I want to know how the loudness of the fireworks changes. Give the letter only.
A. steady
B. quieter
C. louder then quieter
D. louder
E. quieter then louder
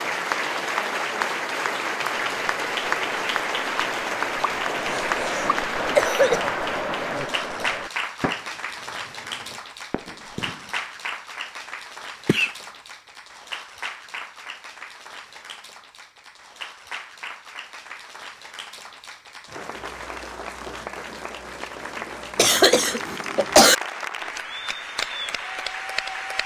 C.